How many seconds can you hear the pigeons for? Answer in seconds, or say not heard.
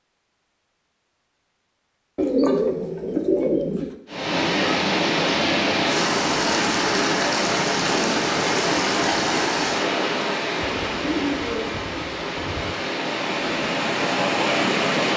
4 s.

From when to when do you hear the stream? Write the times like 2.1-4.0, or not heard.
4.0-15.1.